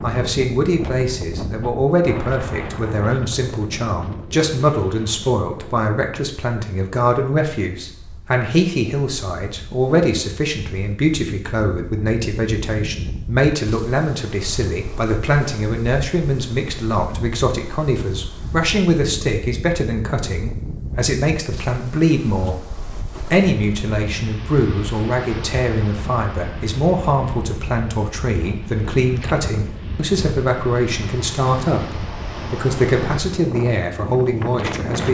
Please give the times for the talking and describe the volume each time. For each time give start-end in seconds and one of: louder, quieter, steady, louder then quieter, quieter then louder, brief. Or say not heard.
0.0-22.6 steady
23.3-35.0 steady.